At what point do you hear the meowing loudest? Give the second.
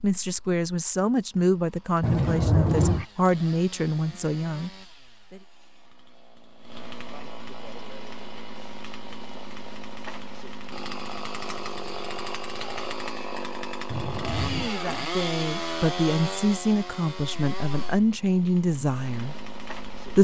3 s.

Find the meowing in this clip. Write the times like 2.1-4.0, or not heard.
2.0-3.0, 13.9-14.7.